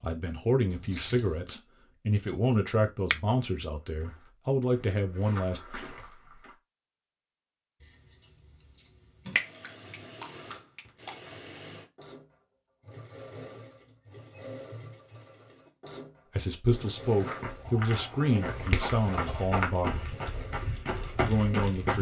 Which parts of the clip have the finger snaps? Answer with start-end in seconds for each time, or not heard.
9.3-11.2, 17.6-18.9.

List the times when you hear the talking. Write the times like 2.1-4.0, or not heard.
0.0-5.6, 16.4-20.1, 21.2-21.9.